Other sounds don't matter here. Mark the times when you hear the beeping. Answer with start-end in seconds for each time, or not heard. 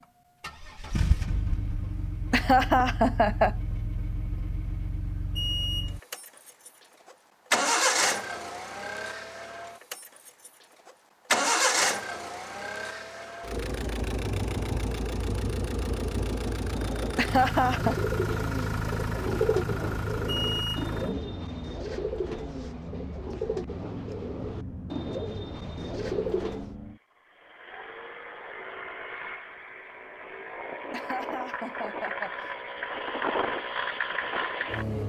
5.3-6.0, 20.2-20.9.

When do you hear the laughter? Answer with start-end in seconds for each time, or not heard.
2.3-3.5, 17.1-17.9, 30.9-32.5.